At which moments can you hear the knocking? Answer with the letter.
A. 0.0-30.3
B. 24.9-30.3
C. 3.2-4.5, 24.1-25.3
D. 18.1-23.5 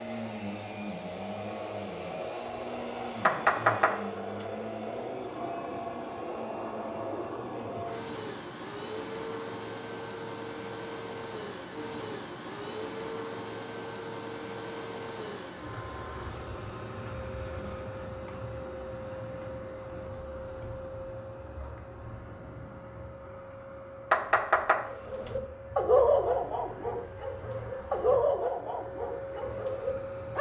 C.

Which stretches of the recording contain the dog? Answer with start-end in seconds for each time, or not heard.
24.9-30.3.